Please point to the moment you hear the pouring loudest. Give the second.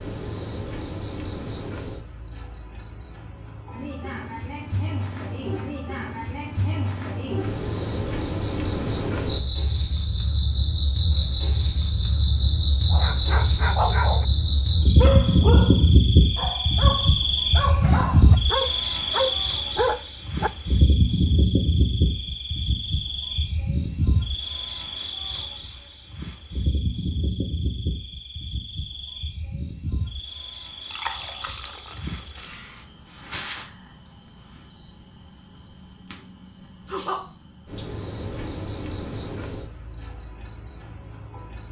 31 s.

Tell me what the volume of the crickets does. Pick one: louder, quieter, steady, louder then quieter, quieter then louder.
louder then quieter.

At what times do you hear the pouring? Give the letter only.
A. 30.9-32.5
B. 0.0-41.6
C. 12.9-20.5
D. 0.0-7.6
A.